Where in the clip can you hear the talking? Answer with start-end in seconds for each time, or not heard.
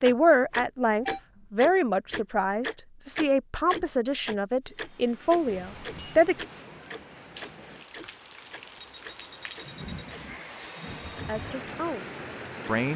0.0-6.5, 10.9-12.9.